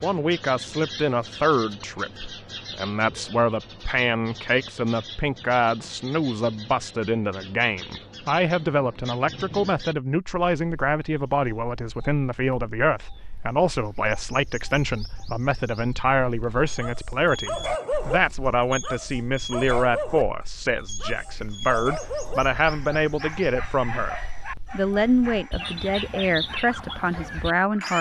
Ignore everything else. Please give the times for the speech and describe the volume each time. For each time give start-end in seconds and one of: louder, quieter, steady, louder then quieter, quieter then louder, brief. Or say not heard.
0.0-27.9 steady.